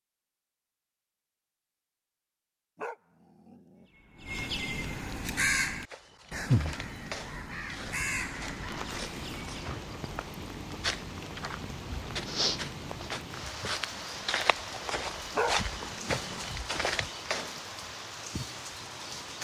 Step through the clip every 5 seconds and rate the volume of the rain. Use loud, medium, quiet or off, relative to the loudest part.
off, loud, loud, loud.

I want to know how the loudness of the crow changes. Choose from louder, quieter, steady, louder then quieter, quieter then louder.
louder then quieter.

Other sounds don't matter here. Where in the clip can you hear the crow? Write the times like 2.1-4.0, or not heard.
3.8-9.7.